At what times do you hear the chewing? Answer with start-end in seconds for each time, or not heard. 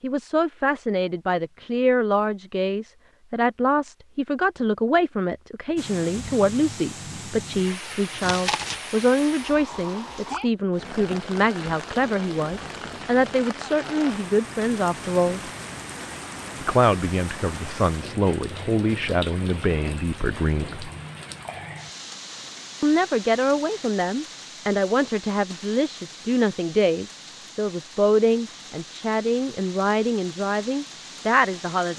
8.2-8.8.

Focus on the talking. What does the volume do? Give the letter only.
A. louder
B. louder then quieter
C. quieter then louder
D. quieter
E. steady
E.